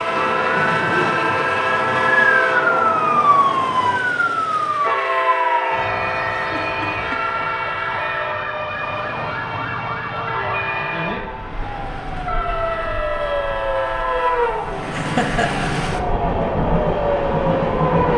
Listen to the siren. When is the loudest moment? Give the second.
3 s.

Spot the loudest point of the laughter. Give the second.
15 s.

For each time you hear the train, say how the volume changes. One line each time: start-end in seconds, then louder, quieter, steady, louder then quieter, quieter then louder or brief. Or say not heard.
0.0-18.1 quieter then louder.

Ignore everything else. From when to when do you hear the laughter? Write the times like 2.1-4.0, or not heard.
0.6-1.5, 6.3-7.5, 14.9-15.7.